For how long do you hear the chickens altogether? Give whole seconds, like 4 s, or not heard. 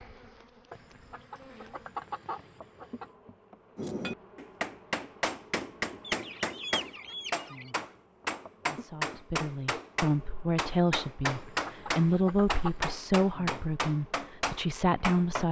6 s.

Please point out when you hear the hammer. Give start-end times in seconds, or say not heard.
3.8-15.4.